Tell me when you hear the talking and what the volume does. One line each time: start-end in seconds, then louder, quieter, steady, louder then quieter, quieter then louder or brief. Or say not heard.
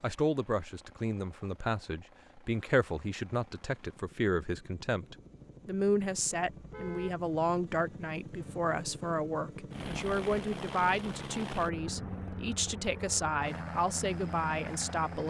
0.0-15.2 steady.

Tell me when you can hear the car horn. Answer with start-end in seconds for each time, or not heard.
6.5-7.2.